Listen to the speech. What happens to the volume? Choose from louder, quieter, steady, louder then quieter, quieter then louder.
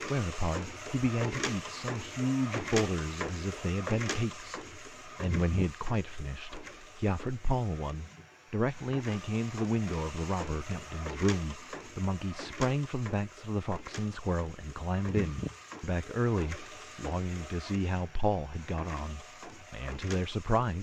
steady.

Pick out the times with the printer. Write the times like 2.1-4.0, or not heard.
0.0-20.7.